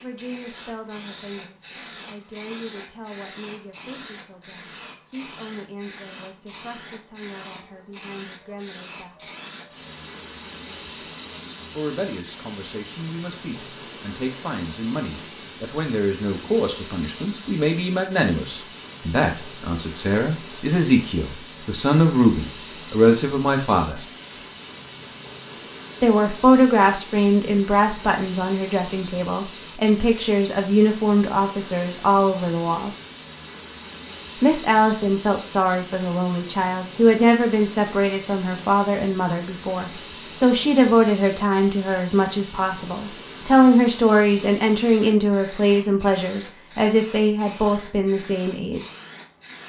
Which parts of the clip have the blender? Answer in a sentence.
The blender can't be heard in this clip.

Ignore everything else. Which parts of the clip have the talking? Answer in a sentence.
The talking can be heard from 0.0 to 9.3 s, from 11.7 to 24.1 s, from 26.0 to 32.9 s and from 34.4 to 48.9 s.